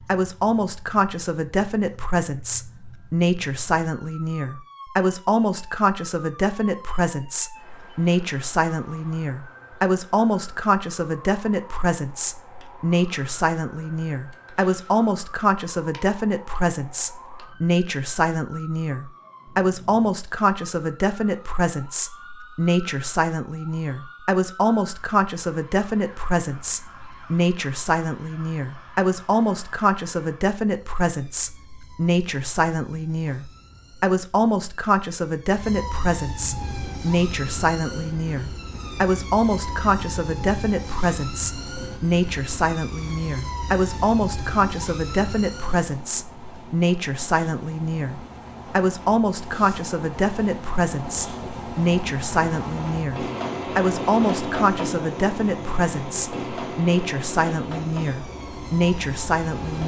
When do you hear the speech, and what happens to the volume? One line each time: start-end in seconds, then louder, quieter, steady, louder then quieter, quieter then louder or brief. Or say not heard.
0.1-59.8 steady.